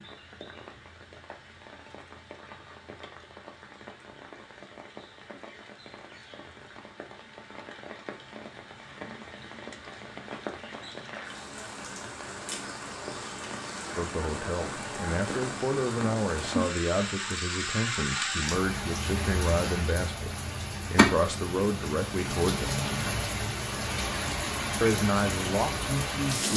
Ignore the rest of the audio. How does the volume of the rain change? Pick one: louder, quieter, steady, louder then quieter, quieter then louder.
louder.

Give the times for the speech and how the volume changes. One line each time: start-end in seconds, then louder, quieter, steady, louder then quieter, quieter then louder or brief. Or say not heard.
13.9-22.8 steady
24.8-26.5 brief.